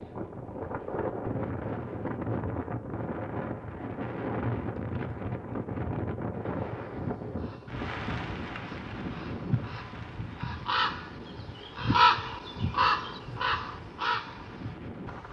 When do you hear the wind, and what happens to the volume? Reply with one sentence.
You can hear the wind from 0.0 to 15.2 s, getting quieter.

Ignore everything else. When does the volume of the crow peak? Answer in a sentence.
The loudest moment of the crow is at 12 seconds.